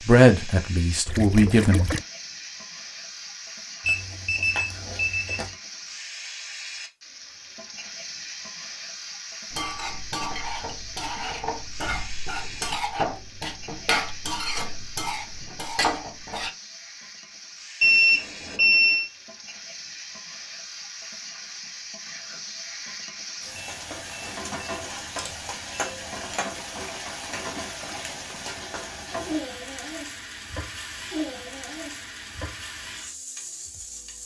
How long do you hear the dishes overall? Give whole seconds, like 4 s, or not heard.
7 s.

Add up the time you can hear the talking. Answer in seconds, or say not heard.
2 s.